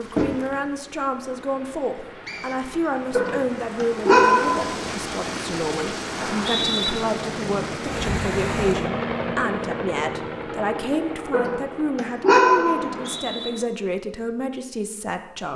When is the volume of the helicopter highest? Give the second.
9 s.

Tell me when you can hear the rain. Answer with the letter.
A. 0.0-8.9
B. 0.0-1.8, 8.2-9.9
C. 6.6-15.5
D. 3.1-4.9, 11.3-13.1
A.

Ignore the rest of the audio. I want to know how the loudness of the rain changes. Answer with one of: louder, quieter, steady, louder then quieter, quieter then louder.
louder.